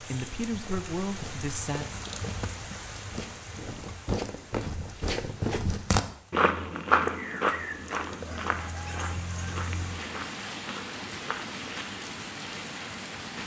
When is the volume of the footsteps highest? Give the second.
7 s.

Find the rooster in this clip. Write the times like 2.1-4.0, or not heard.
8.2-9.6.